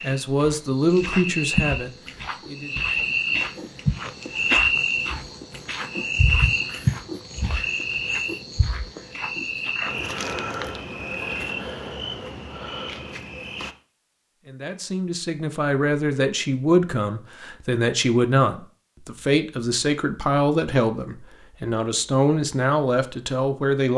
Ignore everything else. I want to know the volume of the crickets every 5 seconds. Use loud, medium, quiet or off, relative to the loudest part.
loud, loud, medium, off, off.